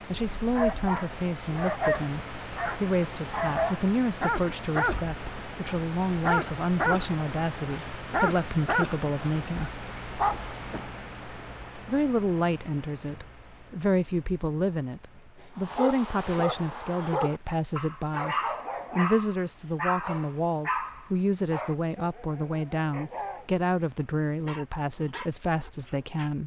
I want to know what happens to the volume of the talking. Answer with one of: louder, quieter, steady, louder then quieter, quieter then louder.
steady.